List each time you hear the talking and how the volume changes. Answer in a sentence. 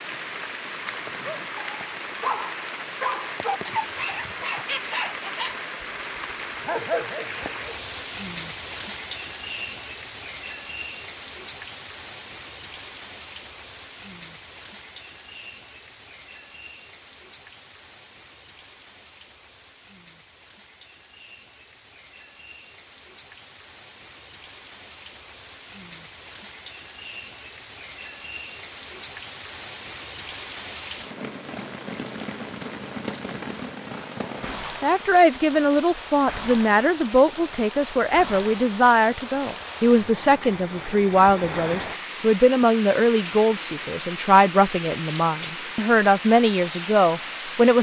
The talking can be heard from 34.8 to 47.7 s, at a steady volume.